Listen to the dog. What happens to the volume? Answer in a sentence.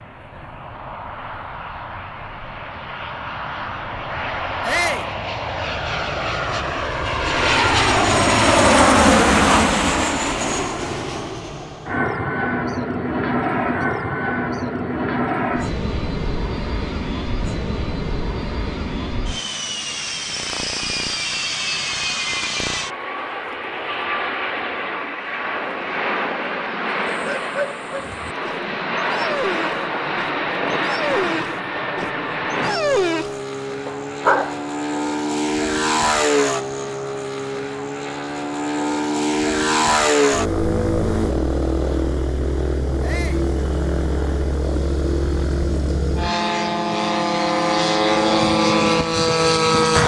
The loudness of the dog goes up.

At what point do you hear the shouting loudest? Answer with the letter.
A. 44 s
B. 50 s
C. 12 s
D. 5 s
D.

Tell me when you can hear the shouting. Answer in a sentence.
The shouting can be heard from 4.7 to 5.1 s and from 43.0 to 43.5 s.